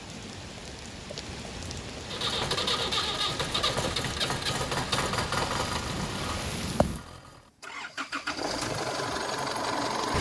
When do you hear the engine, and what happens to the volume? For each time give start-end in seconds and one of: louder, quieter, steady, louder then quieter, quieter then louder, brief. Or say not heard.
2.0-10.1 quieter then louder.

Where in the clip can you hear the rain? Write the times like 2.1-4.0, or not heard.
0.0-7.0.